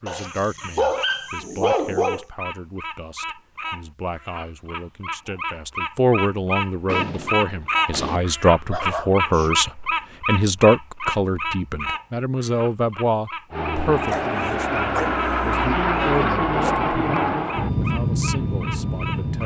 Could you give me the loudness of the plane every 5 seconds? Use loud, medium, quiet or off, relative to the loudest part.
off, off, loud, loud.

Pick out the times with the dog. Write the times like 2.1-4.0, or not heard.
0.1-2.2, 8.7-9.5, 14.1-15.2.